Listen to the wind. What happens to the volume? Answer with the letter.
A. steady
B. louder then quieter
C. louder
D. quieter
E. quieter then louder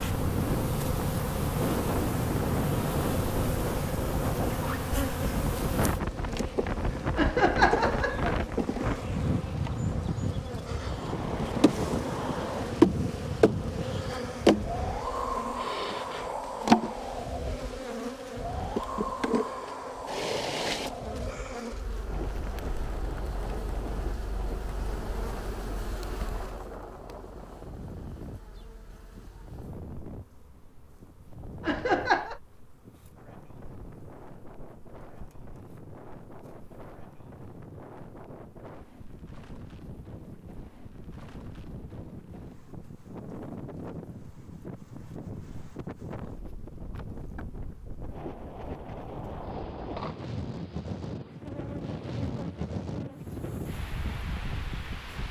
E.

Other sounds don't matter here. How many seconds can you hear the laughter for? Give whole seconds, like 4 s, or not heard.
2 s.